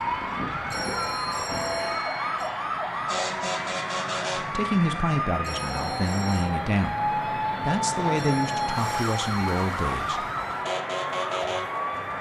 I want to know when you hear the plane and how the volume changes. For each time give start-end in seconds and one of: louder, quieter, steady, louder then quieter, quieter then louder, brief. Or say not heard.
0.0-12.1 steady.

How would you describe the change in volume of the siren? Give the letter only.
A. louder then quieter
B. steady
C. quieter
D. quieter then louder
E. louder
B.